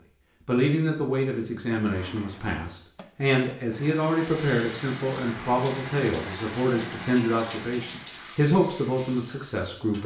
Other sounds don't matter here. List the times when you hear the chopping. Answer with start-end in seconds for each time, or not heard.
not heard.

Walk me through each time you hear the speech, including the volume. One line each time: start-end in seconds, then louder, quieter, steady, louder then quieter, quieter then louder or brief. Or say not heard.
0.5-10.0 steady.